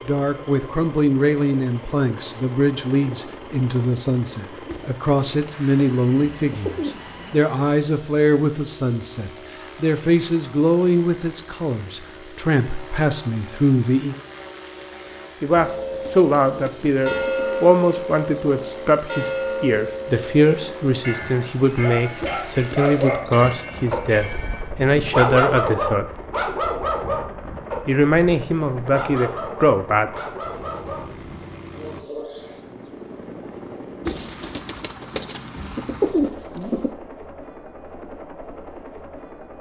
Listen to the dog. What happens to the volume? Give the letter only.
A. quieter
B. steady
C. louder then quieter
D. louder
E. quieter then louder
A.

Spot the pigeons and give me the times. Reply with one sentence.
You can hear the pigeons from 4.7 to 7.4 s, from 15.6 to 17.6 s, from 22.2 to 24.0 s and from 34.0 to 37.0 s.